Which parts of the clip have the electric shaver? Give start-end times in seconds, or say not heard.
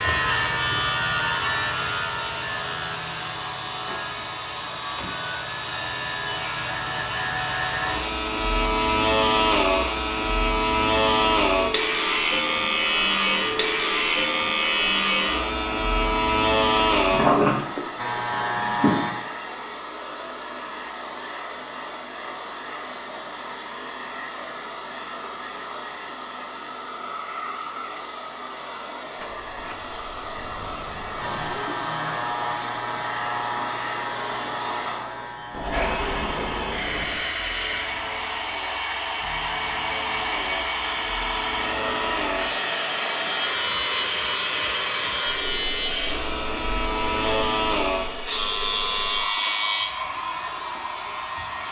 0.0-19.1, 31.1-51.6.